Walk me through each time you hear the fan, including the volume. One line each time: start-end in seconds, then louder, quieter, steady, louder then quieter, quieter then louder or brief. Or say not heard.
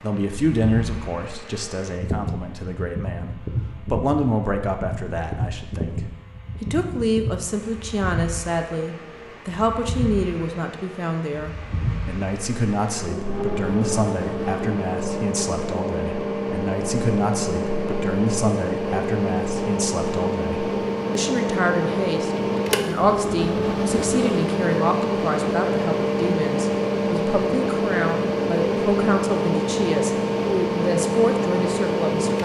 0.0-32.3 louder.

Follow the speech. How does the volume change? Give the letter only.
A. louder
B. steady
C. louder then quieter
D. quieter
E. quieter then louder
B.